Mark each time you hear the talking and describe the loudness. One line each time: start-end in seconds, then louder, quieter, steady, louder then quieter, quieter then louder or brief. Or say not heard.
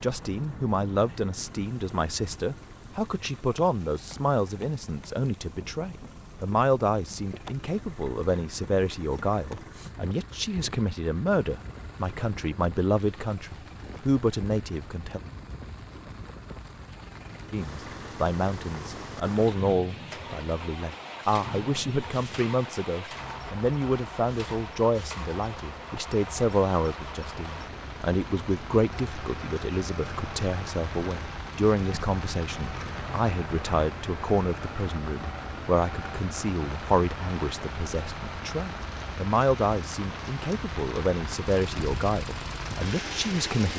0.0-15.2 steady
17.5-43.7 steady.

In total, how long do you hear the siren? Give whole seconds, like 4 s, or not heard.
not heard.